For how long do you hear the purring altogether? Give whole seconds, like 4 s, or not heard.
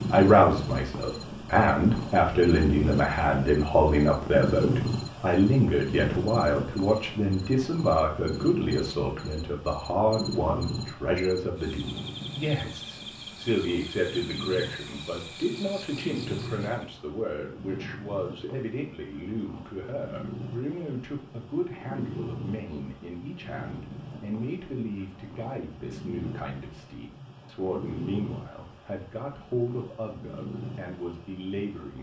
32 s.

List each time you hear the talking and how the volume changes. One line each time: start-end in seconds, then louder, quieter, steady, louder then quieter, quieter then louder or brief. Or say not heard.
0.1-31.9 quieter.